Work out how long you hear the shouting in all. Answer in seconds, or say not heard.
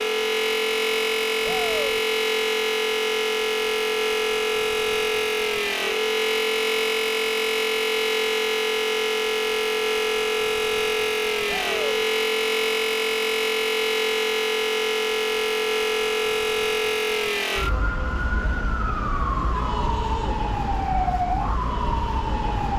2 s.